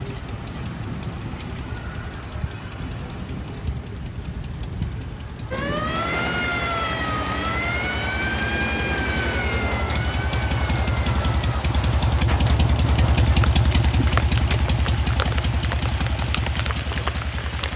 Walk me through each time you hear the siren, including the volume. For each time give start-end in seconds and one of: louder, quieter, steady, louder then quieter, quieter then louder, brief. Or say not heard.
5.5-11.7 quieter.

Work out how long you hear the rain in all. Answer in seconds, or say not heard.
18 s.